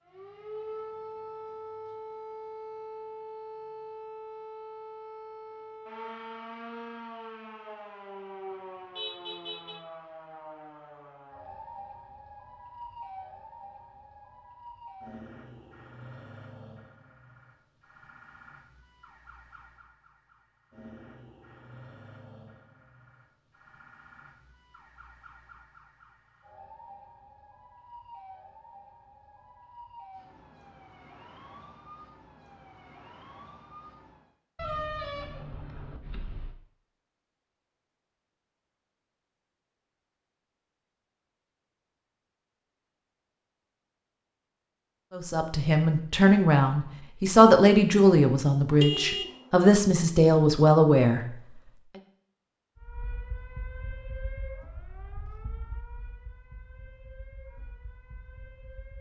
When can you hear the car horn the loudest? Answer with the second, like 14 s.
49 s.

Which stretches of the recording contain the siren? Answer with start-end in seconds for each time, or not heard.
0.1-34.3, 52.8-58.9.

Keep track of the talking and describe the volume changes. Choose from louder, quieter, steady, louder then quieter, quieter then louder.
steady.